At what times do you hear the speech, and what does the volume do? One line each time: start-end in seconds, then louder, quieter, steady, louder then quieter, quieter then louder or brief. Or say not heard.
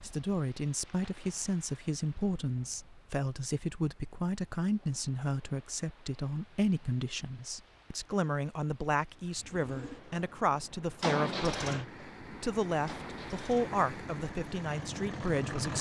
0.0-15.7 steady.